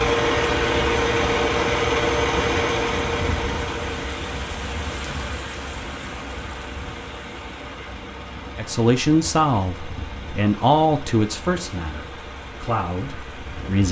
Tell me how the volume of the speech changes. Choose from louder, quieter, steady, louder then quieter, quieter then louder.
quieter then louder.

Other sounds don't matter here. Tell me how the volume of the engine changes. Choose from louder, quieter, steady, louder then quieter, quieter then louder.
quieter.